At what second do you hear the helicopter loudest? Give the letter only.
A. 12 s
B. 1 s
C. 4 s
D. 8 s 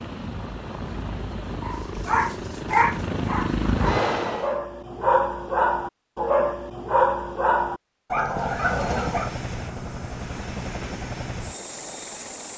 C.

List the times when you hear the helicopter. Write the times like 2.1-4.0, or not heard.
0.0-4.6, 8.2-12.5.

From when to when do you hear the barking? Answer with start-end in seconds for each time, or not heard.
1.6-9.3.